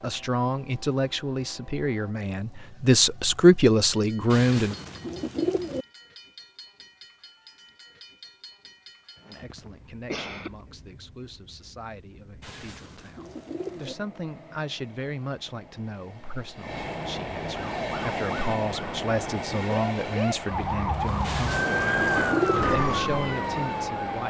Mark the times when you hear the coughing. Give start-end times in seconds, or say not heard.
9.2-10.6.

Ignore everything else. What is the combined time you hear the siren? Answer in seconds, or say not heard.
7 s.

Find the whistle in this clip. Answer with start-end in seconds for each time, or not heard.
not heard.